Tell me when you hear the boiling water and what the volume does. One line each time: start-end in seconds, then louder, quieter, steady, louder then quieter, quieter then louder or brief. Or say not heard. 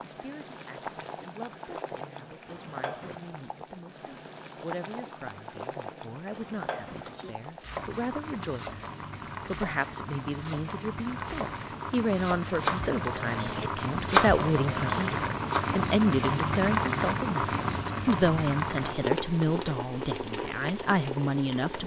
0.0-21.8 louder.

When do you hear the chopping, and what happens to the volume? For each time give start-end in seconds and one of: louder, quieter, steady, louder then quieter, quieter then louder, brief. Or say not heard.
6.8-15.8 louder.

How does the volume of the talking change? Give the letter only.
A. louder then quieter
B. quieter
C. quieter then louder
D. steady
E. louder
E.